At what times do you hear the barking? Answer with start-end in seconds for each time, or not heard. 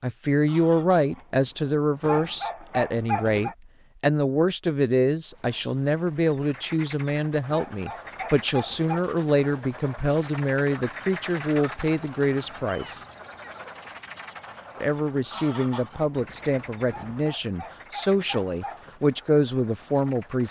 2.0-3.5, 7.5-9.0, 16.9-18.9.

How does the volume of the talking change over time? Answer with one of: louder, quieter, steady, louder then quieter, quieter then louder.
steady.